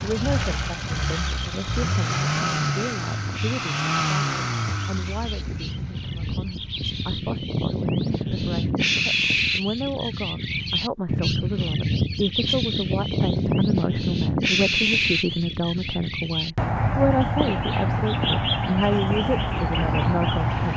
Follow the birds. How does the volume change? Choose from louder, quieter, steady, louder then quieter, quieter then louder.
louder.